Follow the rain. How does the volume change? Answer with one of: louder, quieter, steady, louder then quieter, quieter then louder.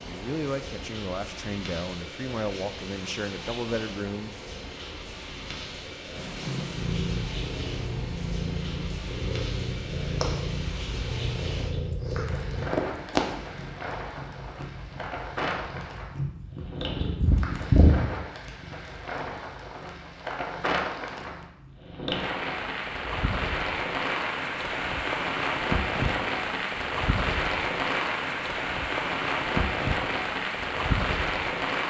louder.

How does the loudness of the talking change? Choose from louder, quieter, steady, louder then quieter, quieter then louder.
steady.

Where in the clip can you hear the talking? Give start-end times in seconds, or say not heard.
0.1-4.3.